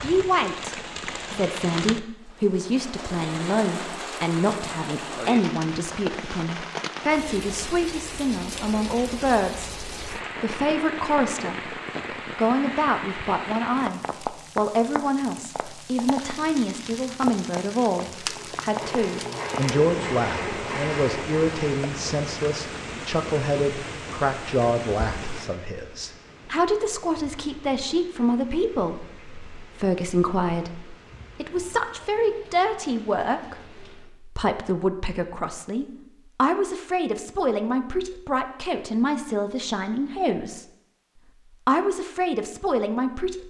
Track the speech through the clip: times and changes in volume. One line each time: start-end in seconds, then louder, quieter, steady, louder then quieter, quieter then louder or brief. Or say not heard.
0.0-11.8 steady
12.3-40.6 steady
41.6-43.4 brief.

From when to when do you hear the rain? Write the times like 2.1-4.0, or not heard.
0.0-34.1.